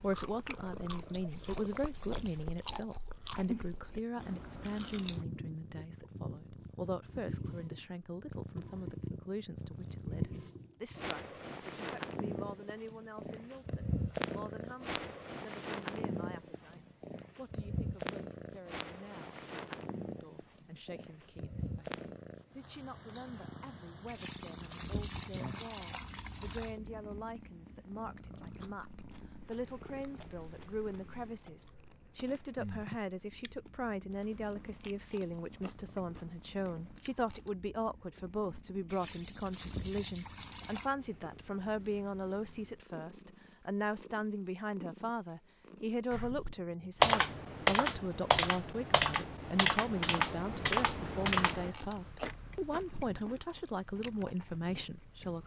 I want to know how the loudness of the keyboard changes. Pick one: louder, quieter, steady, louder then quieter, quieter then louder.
quieter.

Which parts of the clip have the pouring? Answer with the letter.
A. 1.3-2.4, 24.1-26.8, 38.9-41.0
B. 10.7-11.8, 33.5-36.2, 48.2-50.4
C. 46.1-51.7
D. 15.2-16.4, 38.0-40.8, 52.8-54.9
A.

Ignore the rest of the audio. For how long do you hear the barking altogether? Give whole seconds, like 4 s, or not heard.
not heard.